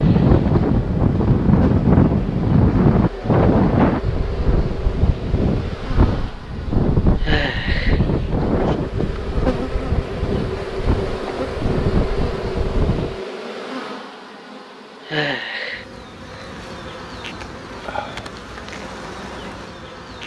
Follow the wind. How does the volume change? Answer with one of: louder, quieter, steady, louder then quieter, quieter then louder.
quieter.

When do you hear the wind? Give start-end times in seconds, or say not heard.
0.0-13.2.